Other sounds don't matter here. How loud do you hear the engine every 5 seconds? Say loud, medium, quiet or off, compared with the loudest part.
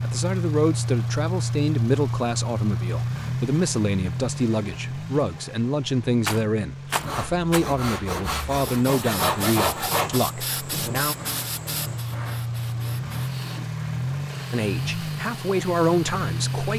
loud, medium, loud, loud.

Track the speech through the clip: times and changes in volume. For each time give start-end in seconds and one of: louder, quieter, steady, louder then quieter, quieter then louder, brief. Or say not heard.
0.0-11.2 steady
14.5-16.7 brief.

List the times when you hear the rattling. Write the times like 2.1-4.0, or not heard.
6.2-7.7.